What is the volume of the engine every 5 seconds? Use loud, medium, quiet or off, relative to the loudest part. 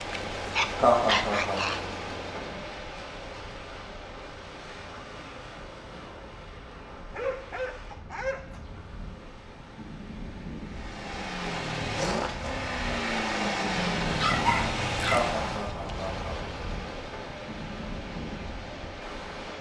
medium, off, loud, medium.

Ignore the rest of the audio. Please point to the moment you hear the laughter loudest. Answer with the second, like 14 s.
1 s.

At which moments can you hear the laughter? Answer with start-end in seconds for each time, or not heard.
0.8-1.6, 15.1-16.4.